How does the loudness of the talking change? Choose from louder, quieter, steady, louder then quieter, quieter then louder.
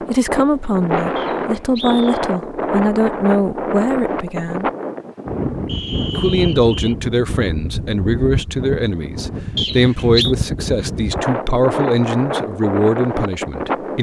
steady.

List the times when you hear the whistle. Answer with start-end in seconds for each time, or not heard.
1.1-2.2, 5.7-7.0, 9.6-10.3.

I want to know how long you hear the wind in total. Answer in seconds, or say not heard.
14 s.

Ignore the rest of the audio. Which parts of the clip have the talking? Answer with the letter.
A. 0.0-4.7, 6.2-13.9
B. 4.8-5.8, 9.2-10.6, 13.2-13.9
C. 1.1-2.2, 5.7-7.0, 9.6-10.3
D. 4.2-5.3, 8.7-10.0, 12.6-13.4
A.